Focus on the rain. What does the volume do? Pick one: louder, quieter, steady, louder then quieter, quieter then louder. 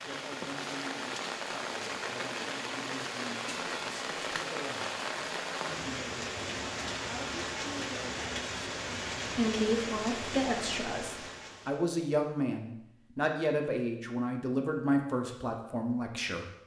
steady.